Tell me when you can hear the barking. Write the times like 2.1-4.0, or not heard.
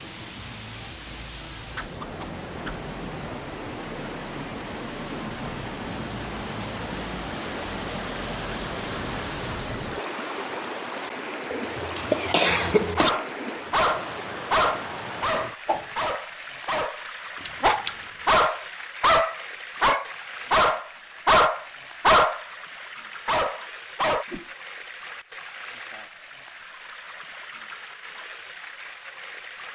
12.9-22.4, 23.2-24.2.